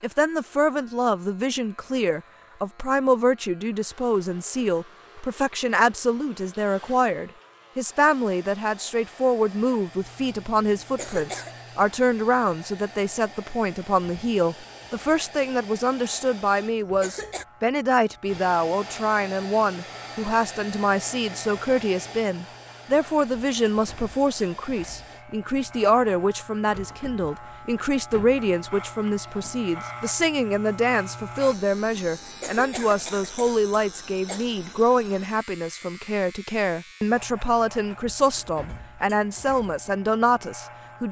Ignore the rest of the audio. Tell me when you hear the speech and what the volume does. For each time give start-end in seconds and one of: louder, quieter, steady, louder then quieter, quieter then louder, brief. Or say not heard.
0.0-41.0 steady.